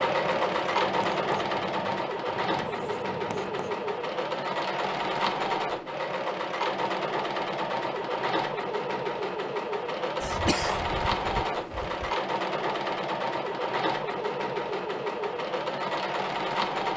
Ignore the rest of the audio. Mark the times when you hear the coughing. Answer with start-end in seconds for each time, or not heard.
10.2-12.2.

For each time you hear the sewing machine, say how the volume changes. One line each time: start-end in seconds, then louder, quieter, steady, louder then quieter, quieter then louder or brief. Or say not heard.
0.0-16.9 steady.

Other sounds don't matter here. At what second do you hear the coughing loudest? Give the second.
11 s.